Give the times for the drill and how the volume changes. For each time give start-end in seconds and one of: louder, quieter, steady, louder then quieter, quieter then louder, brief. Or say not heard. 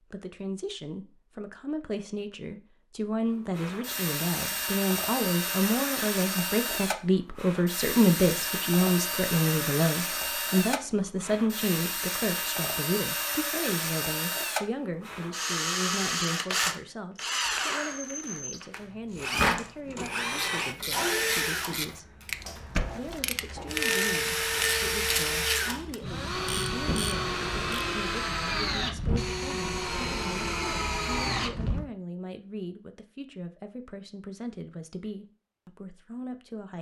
3.5-31.9 steady.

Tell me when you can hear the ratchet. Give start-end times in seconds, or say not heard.
19.1-28.0.